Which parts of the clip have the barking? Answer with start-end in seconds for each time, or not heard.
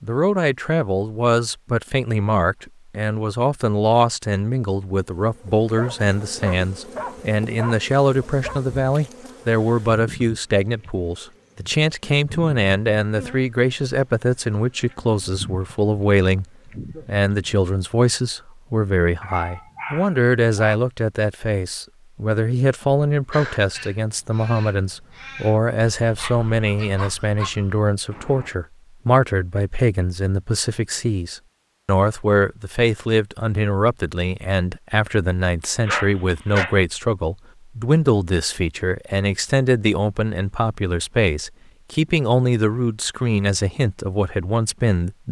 5.8-8.6, 19.2-20.8, 26.1-27.5, 35.9-36.8.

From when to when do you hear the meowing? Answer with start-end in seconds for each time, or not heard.
not heard.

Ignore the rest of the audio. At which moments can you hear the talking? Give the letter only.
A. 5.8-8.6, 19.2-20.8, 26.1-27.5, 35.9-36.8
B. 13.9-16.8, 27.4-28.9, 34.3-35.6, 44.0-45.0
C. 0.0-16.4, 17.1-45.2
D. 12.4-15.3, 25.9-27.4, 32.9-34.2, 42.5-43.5
C.